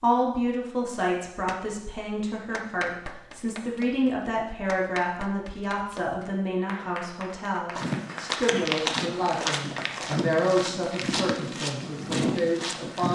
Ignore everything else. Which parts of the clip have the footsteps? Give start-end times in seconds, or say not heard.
7.8-13.0.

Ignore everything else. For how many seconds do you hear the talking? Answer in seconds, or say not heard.
13 s.